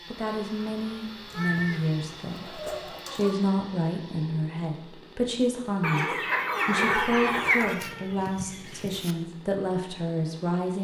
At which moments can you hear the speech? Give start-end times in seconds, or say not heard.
0.1-6.0, 6.7-10.7.